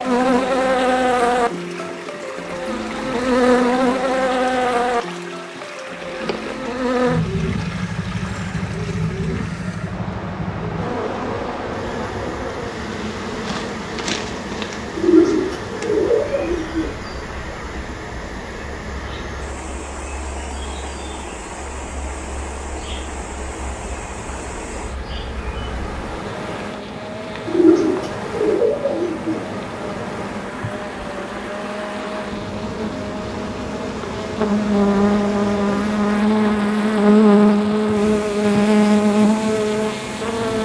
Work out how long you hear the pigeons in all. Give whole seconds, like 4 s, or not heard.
4 s.